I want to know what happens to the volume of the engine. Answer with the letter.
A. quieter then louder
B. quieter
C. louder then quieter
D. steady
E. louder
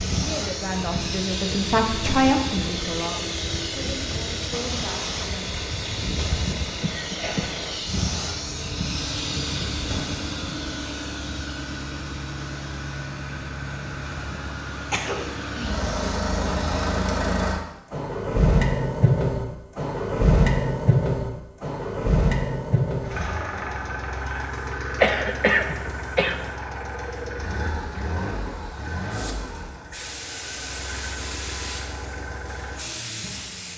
C.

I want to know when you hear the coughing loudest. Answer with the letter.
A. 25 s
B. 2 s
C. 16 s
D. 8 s
A.